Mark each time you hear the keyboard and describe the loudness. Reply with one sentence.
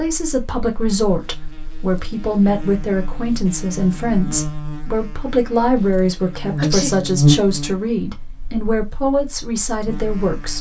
The keyboard can't be heard in this clip.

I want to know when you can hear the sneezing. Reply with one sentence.
You can hear the sneezing from 6.5 to 7.0 s.